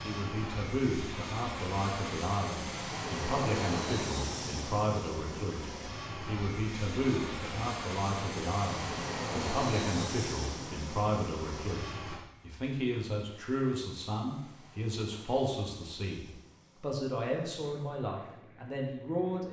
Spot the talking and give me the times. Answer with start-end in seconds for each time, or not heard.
0.0-19.4.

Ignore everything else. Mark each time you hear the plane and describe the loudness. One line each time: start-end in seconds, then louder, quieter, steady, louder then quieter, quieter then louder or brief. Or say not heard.
0.0-19.4 quieter.